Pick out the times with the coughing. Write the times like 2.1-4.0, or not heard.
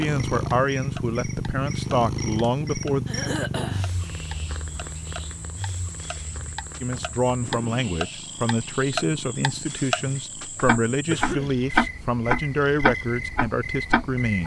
3.0-3.9, 11.1-11.6.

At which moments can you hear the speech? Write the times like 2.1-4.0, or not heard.
0.0-3.0, 6.8-14.4.